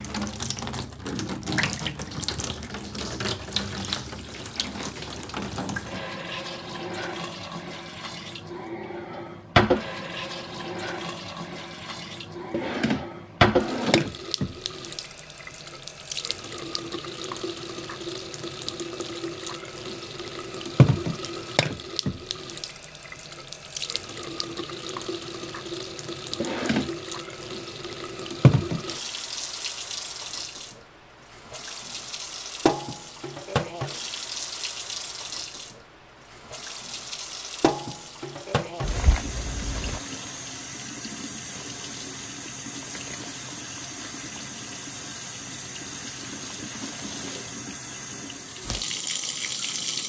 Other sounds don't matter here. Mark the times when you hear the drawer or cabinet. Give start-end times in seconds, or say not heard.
12.5-14.1, 26.4-26.9.